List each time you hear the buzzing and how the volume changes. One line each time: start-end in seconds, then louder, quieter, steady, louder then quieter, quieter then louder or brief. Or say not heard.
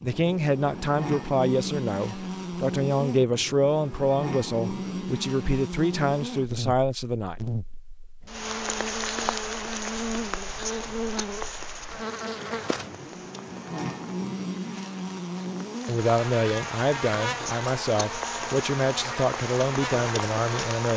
0.0-20.9 steady.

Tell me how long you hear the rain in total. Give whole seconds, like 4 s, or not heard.
13 s.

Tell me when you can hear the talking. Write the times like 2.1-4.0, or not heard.
0.0-7.3, 15.8-20.9.